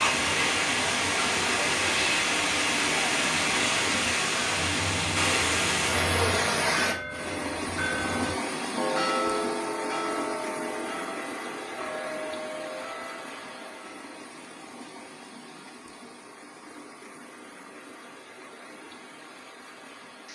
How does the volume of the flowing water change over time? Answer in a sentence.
The loudness of the flowing water goes down.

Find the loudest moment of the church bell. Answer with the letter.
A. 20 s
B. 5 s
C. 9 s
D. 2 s
C.